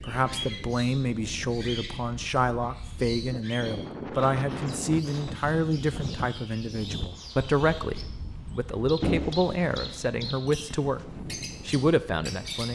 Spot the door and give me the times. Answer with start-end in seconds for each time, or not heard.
9.0-10.0.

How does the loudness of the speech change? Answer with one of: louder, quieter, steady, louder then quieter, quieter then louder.
steady.